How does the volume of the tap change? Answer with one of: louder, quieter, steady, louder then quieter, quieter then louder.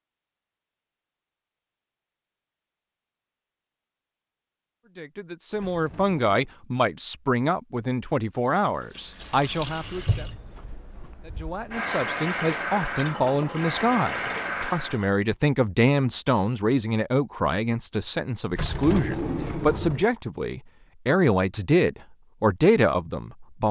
quieter then louder.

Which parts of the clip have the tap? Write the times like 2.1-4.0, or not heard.
8.8-15.1.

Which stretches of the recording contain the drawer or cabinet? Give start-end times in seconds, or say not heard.
5.5-6.5, 18.5-20.1.